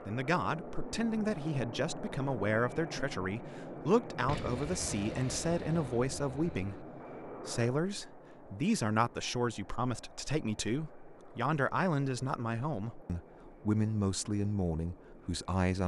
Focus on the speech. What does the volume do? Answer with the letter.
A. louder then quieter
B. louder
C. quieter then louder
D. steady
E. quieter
D.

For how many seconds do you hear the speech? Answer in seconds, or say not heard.
16 s.